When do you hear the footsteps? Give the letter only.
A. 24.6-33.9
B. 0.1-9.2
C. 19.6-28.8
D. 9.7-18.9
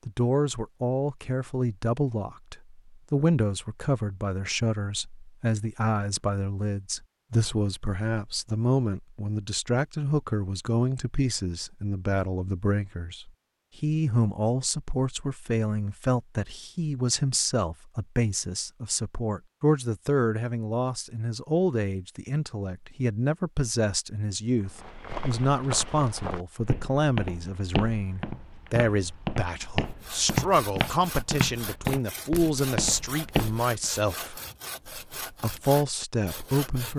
A.